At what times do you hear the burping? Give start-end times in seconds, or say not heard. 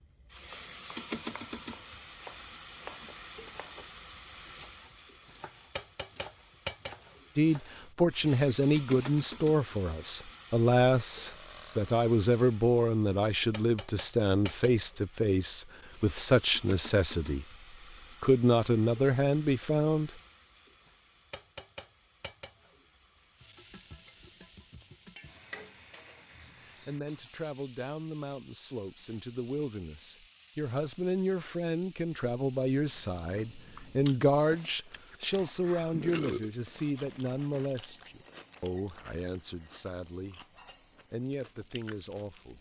11.2-11.9, 35.9-36.5.